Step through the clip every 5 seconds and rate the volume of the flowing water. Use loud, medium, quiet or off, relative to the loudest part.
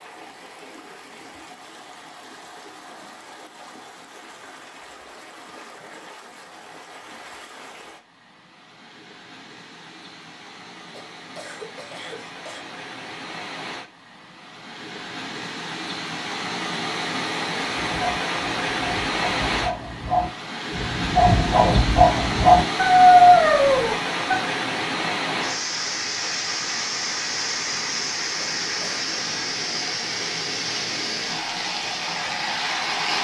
quiet, quiet, quiet, loud, loud, loud, loud.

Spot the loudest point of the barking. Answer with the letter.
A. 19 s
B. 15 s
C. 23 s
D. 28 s
C.